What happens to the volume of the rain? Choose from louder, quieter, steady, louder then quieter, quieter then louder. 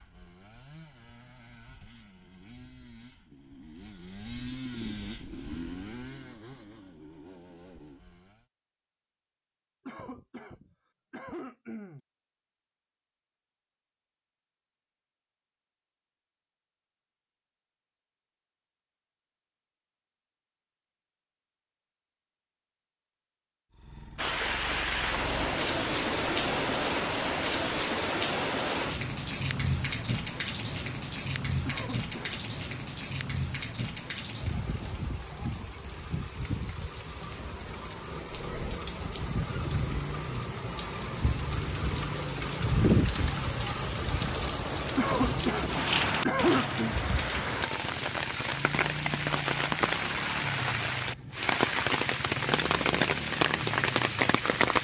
quieter then louder.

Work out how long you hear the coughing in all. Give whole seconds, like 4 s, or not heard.
5 s.